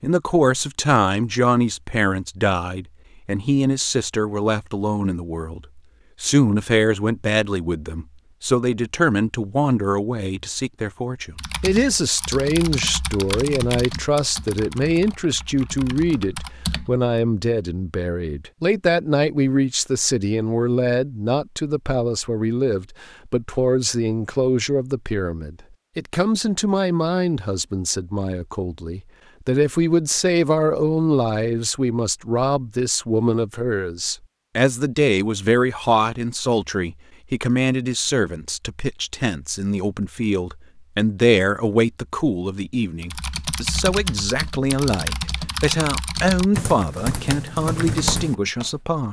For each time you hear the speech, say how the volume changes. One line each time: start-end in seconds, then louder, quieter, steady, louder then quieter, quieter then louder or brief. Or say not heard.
0.0-49.0 steady.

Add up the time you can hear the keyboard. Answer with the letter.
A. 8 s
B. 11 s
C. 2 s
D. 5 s
B.